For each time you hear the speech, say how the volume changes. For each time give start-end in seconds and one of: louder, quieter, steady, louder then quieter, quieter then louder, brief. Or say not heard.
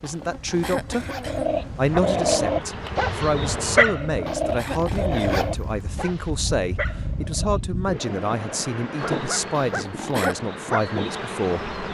0.0-1.1 brief
1.8-11.7 steady.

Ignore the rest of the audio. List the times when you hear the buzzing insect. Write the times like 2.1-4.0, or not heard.
0.0-3.9, 8.9-11.9.